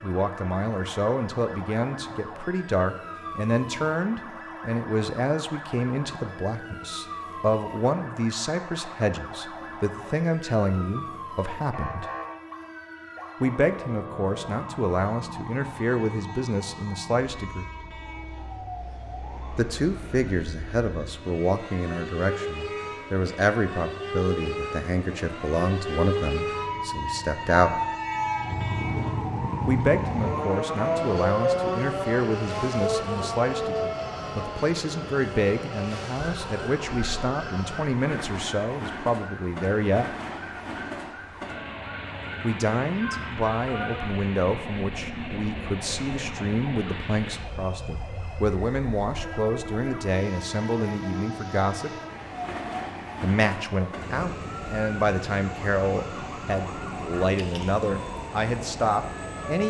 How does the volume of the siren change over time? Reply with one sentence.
The loudness of the siren goes up, then down.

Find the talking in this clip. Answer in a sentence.
You can hear the talking from 0.0 to 12.1 s, from 13.4 to 17.6 s, from 19.6 to 27.8 s, from 29.6 to 40.1 s, from 42.4 to 52.0 s and from 53.2 to 59.6 s.